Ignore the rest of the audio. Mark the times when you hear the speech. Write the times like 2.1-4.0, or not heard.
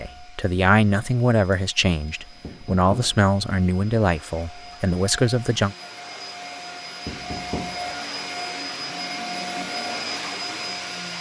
0.0-5.8.